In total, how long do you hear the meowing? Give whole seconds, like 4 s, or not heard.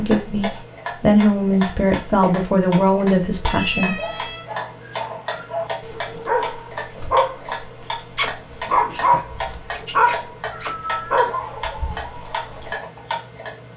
2 s.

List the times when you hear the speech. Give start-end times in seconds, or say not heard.
0.0-4.0.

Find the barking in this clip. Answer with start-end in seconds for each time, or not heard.
4.0-12.8.